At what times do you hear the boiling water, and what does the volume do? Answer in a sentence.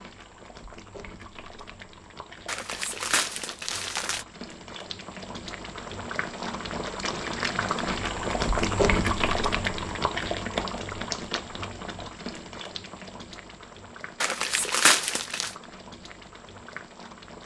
You can hear the boiling water from 0.0 to 17.4 s, getting louder then quieter.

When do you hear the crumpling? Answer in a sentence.
The crumpling can be heard from 2.5 to 4.2 s and from 14.2 to 15.6 s.